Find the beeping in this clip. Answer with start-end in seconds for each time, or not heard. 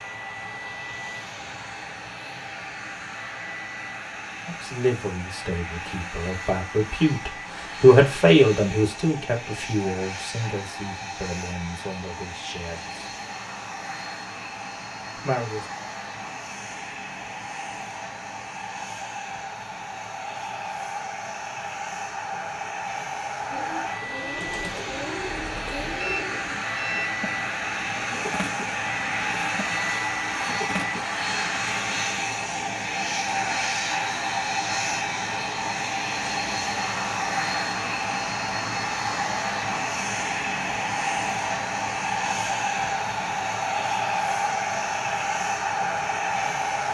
26.0-27.1.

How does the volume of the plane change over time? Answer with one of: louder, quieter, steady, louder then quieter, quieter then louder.
louder.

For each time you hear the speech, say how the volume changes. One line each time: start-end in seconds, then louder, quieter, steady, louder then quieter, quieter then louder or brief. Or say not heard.
4.5-13.0 louder then quieter
15.2-15.7 brief.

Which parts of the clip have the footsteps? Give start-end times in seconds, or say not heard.
not heard.